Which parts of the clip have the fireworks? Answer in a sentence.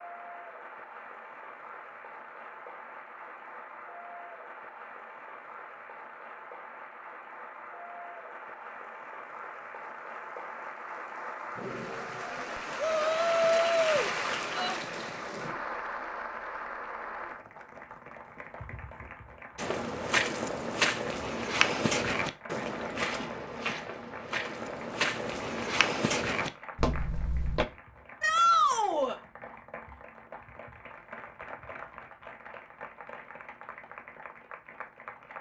You can't hear the fireworks here.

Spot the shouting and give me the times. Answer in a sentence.
You can hear the shouting from 12.8 to 14.8 s and from 28.2 to 29.1 s.